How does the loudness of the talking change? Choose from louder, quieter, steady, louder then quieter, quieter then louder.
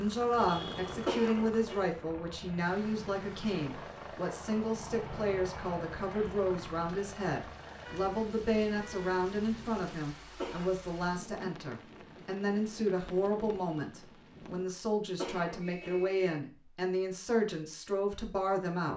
steady.